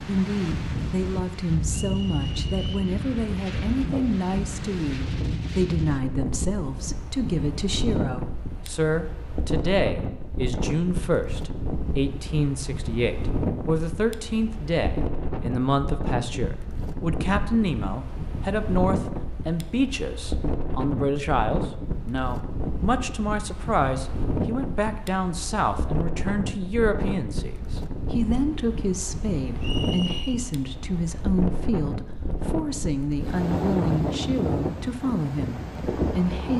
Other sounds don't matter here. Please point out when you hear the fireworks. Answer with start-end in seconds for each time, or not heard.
not heard.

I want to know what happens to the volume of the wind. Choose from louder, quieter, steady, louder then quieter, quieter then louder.
steady.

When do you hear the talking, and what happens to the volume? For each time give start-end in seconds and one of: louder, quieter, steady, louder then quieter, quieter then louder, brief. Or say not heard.
0.1-36.5 steady.